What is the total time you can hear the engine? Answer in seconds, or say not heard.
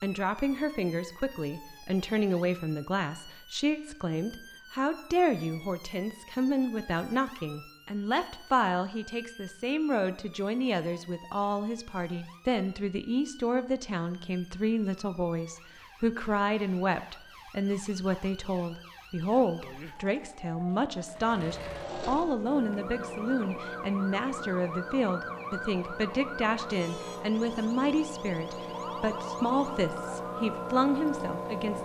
11 s.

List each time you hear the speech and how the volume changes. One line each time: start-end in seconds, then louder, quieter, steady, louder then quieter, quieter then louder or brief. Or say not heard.
0.0-31.8 steady.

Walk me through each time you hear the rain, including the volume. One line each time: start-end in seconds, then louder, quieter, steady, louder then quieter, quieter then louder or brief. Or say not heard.
not heard.